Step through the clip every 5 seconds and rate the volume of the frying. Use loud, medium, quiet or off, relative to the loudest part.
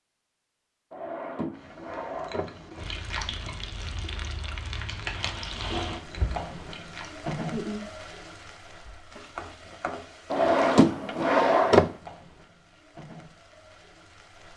loud, loud, medium.